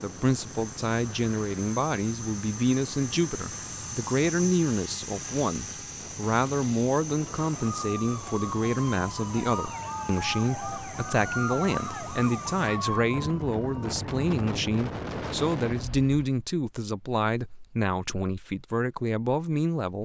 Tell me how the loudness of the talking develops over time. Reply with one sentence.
The loudness of the talking stays about the same.